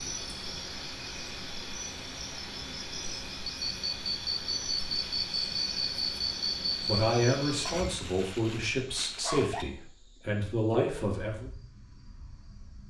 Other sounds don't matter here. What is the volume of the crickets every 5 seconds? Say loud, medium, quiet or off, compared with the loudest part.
loud, loud, medium.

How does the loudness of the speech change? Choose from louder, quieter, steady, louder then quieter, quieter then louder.
quieter then louder.